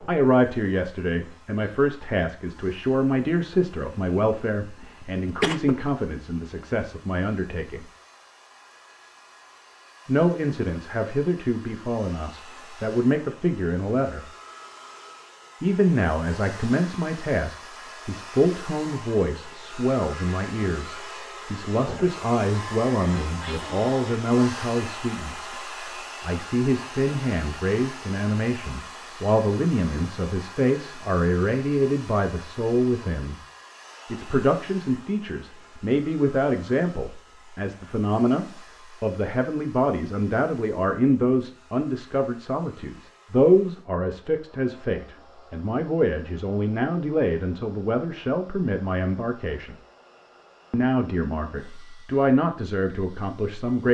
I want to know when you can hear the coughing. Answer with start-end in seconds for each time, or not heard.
4.8-5.8.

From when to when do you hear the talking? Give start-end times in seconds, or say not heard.
0.0-7.8, 10.1-14.2, 15.6-25.6, 26.2-33.4, 34.0-49.8, 50.7-53.8.